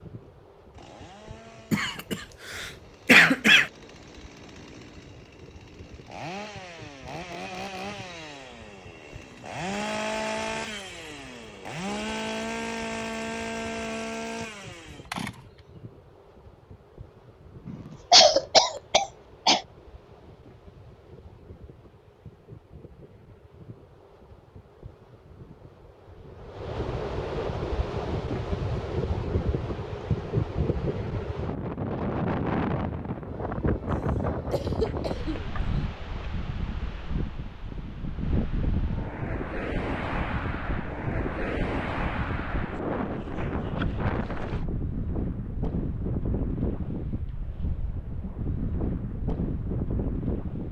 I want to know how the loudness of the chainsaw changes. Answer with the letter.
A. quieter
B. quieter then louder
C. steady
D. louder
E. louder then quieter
D.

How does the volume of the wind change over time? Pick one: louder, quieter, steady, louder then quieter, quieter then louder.
louder.